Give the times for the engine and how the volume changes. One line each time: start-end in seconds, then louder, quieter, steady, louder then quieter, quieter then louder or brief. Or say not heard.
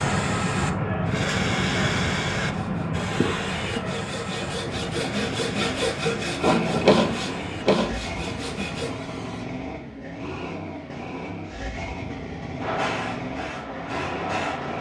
4.7-14.7 steady.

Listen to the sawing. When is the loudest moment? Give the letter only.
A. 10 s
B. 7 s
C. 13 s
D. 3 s
B.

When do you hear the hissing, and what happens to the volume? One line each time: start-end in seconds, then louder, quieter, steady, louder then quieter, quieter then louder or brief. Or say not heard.
0.0-9.5 quieter
12.6-14.7 brief.